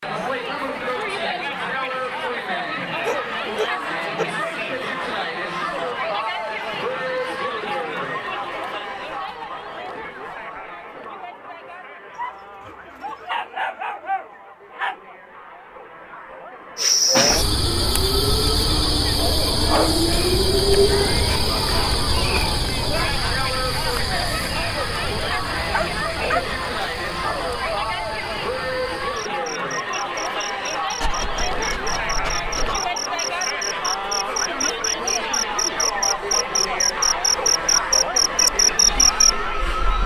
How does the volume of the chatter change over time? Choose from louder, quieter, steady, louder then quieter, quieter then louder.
quieter then louder.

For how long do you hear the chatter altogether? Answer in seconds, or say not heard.
40 s.